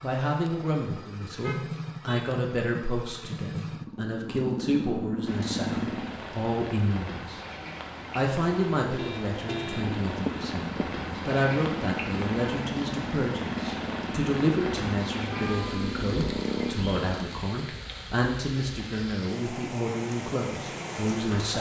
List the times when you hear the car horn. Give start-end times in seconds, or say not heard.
1.4-2.2, 8.9-10.0, 15.2-15.9.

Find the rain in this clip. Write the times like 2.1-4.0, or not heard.
5.2-21.5.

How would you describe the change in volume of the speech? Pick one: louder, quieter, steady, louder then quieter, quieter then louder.
steady.